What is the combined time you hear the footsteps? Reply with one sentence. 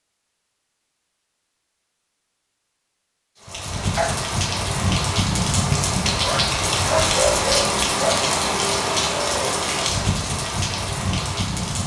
The footsteps can't be heard in this clip.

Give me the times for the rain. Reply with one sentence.
You can hear the rain from 3.4 to 11.8 s.